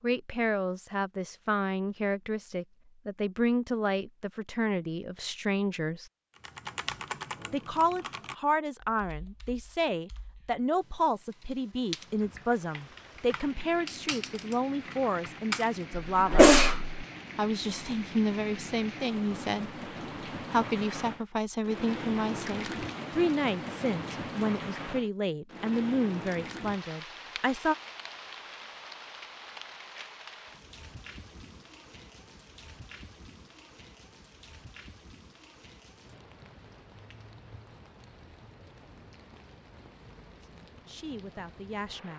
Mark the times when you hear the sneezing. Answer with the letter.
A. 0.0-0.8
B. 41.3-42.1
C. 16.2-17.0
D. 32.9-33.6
C.